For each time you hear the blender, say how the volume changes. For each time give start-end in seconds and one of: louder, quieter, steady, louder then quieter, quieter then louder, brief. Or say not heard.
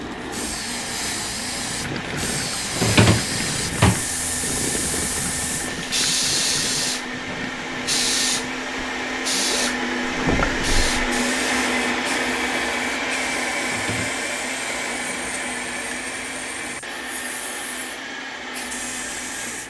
0.0-19.6 louder then quieter.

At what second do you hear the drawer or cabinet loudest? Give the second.
3 s.